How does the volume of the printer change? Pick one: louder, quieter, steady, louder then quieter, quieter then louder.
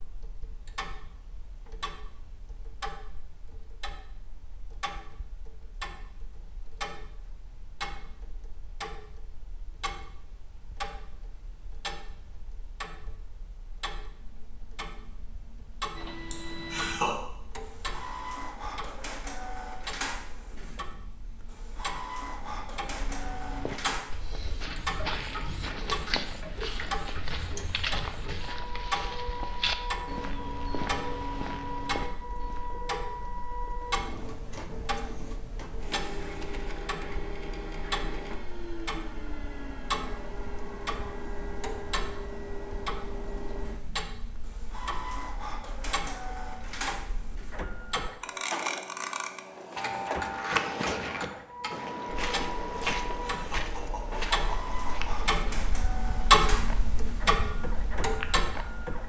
steady.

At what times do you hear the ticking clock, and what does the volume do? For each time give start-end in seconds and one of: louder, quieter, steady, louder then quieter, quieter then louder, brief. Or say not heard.
0.0-59.0 louder.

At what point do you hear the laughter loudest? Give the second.
17 s.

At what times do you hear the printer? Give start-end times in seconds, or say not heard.
15.9-59.0.